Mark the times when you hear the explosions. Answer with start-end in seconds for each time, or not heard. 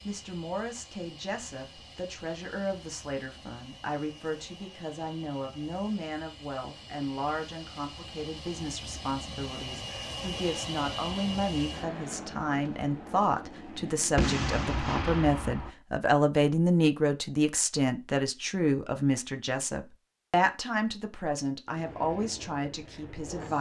14.2-15.7.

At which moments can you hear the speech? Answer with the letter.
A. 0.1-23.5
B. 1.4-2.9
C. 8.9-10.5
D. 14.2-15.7
A.